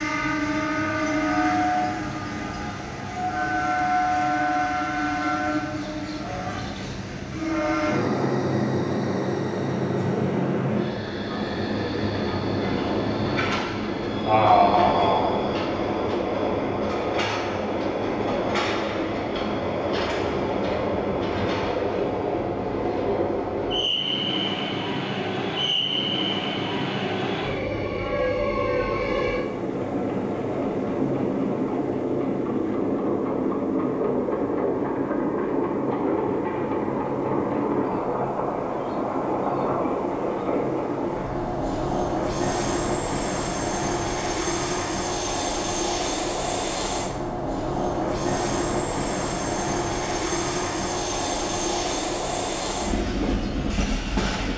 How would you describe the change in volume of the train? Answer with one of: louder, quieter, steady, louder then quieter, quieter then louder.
steady.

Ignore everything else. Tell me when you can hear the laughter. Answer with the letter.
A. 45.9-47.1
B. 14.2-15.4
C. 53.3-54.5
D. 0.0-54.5
B.